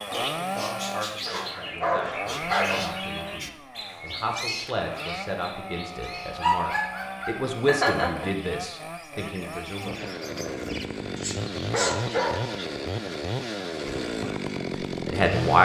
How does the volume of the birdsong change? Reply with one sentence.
The volume of the birdsong goes down, then up.